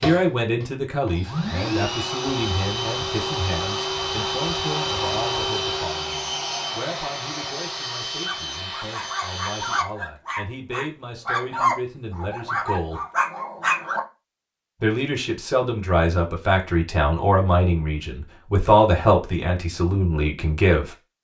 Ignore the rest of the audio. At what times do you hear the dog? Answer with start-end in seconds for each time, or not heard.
8.2-14.0.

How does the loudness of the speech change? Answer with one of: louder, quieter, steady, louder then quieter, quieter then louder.
quieter then louder.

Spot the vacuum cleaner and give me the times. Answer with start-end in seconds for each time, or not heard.
0.0-9.8.